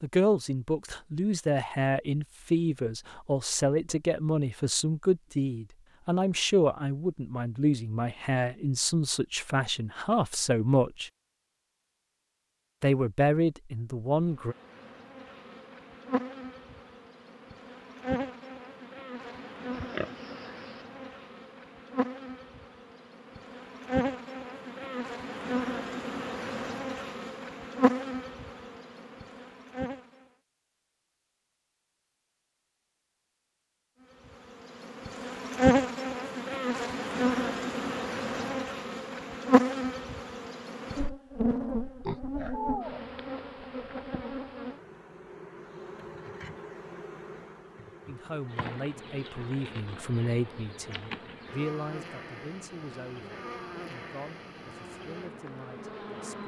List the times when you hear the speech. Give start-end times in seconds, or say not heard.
0.0-11.1, 12.8-14.6, 48.0-56.4.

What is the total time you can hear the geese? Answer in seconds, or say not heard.
not heard.